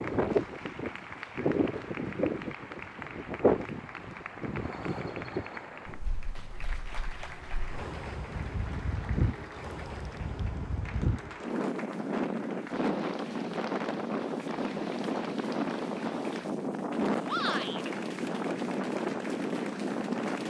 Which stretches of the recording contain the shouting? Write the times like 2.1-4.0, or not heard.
17.2-17.9.